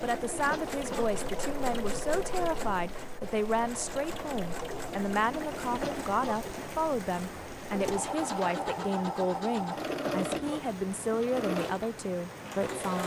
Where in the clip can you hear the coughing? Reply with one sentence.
The coughing can be heard from 0.5 to 1.1 s, from 5.8 to 6.4 s and from 10.1 to 10.7 s.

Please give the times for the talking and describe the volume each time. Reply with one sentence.
The talking can be heard from 0.0 to 13.0 s, at a steady volume.